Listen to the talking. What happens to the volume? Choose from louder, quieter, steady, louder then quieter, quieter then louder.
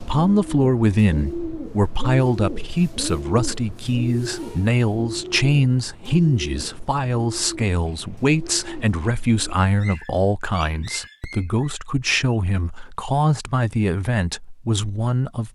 steady.